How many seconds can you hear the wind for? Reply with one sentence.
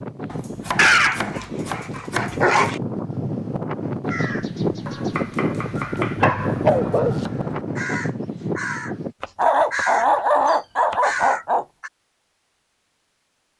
You can hear the wind for 9 seconds altogether.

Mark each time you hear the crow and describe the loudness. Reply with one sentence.
You can hear the crow from 4.0 to 8.9 s, getting louder; and briefly from 9.7 to 11.9 s.